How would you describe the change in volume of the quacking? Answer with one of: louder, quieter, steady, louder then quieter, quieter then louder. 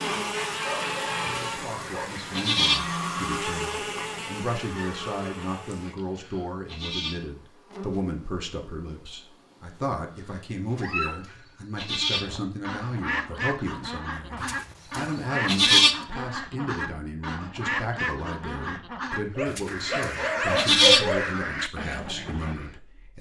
steady.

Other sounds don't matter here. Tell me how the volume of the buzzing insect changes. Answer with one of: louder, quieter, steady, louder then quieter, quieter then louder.
quieter.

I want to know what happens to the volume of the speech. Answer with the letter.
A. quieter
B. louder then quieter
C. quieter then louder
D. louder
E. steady
E.